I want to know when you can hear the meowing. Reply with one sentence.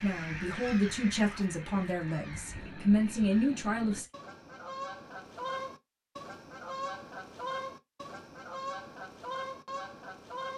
The meowing can't be heard in this clip.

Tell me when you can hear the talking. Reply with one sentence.
The talking can be heard from 0.0 to 4.0 s.